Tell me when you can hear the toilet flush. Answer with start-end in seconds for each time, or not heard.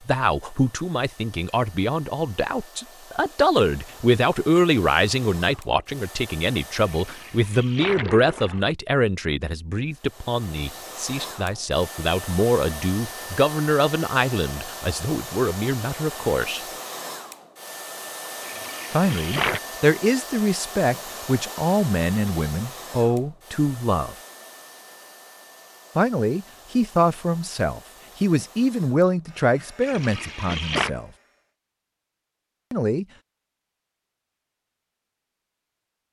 6.8-8.7, 18.4-19.6, 29.8-30.9.